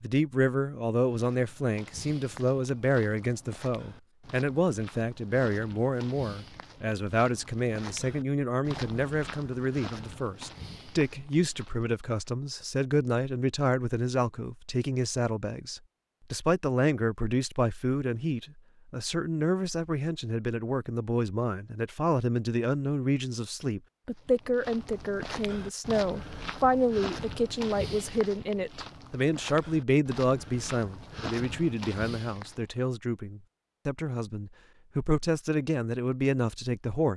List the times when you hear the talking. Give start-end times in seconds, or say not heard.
0.0-37.1.